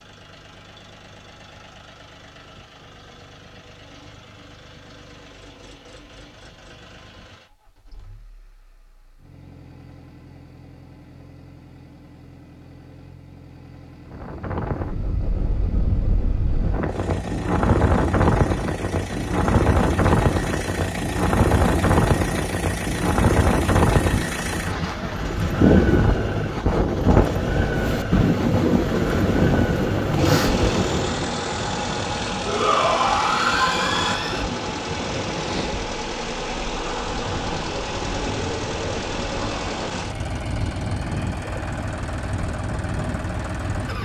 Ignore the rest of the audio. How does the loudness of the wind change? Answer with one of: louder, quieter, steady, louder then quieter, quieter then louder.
quieter.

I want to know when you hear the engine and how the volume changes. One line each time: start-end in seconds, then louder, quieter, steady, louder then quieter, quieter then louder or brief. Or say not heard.
0.0-43.9 louder.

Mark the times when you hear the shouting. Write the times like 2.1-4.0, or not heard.
32.5-34.5.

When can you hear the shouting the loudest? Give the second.
33 s.